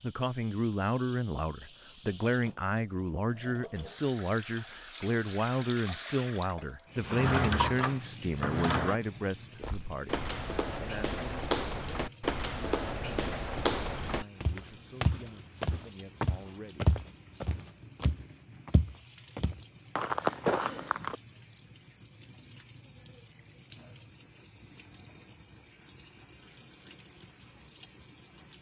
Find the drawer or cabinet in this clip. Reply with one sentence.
The drawer or cabinet can be heard from 7.0 to 9.0 s.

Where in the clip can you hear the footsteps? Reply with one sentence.
The footsteps can be heard from 9.6 to 21.1 s.